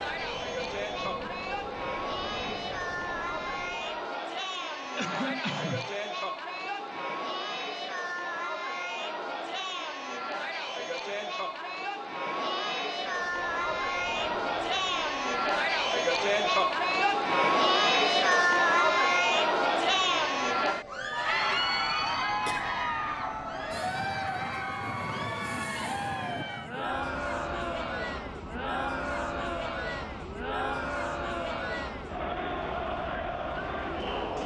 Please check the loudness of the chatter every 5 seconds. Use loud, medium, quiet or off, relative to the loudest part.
medium, medium, medium, loud, medium, medium, medium.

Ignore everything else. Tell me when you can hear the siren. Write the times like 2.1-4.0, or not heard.
not heard.